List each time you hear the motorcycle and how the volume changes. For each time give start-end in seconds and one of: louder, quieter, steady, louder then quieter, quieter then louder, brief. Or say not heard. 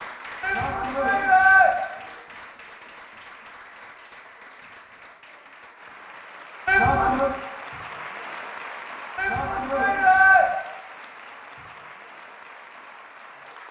not heard.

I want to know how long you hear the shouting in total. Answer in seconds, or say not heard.
3 s.